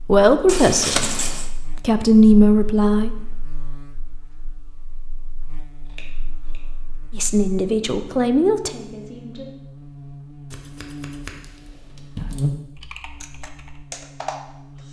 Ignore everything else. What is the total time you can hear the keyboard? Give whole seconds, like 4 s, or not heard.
2 s.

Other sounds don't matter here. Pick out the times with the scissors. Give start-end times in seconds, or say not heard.
0.5-1.5, 5.8-6.6, 10.5-12.5.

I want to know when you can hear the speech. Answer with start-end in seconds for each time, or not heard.
0.0-3.1, 7.1-9.5.